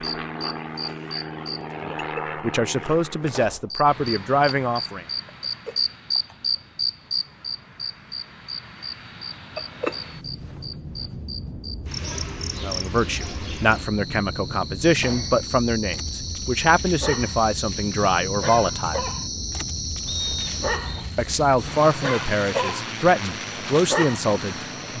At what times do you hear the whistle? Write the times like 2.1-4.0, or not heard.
20.1-21.1.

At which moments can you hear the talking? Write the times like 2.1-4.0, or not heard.
1.8-5.0, 12.5-19.1, 21.1-24.9.